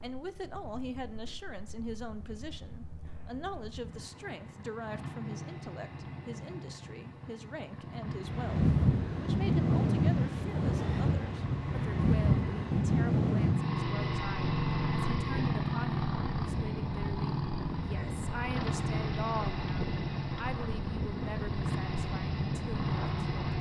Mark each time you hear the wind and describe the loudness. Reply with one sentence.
You can hear the wind from 8.1 to 23.5 s, getting quieter.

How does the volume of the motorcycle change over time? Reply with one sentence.
The volume of the motorcycle goes up.